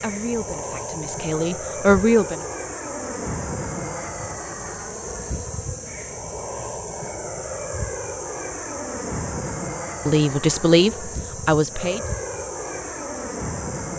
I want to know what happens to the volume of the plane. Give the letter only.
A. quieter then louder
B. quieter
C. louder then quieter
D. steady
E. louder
D.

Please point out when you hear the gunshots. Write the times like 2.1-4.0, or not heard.
not heard.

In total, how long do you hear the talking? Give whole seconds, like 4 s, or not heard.
4 s.